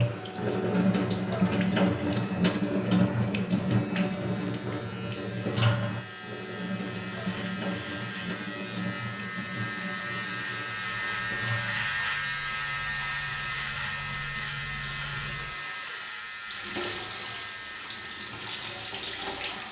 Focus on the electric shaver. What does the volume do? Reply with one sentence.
The loudness of the electric shaver goes up, then down.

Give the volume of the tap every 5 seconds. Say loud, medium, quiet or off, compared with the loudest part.
loud, medium, quiet, medium.